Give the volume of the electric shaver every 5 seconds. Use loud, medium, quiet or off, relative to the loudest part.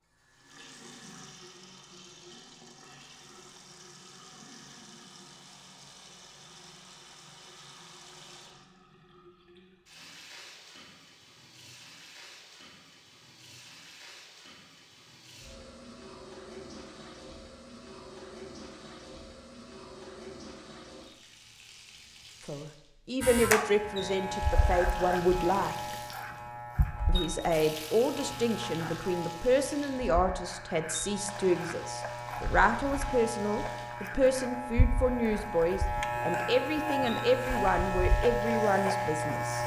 off, off, off, off, loud, medium, medium, loud.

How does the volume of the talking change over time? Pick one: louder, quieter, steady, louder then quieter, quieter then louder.
steady.